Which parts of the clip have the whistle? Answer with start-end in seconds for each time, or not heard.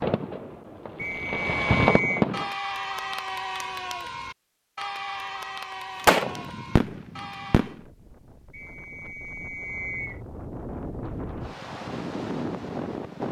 0.9-2.2, 8.5-10.2.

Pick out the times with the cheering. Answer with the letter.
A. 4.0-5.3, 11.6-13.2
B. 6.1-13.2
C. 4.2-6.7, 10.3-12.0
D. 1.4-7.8
D.